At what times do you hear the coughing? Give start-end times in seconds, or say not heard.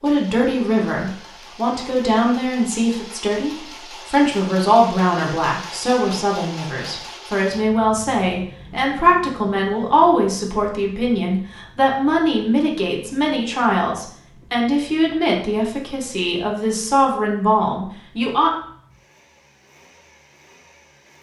not heard.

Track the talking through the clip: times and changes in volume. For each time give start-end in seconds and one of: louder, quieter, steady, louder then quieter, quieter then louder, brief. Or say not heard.
0.0-18.5 steady.